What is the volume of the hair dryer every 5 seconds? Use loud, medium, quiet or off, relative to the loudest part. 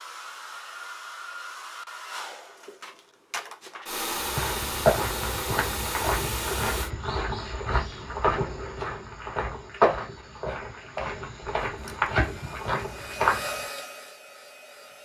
loud, loud, medium.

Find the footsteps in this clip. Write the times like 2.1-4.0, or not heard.
4.2-13.7.